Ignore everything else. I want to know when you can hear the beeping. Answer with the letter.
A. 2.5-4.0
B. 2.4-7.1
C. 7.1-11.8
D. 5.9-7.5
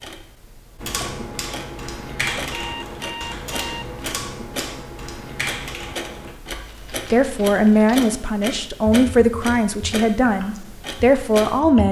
A.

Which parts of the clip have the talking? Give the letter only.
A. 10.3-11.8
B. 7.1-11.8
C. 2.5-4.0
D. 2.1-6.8
B.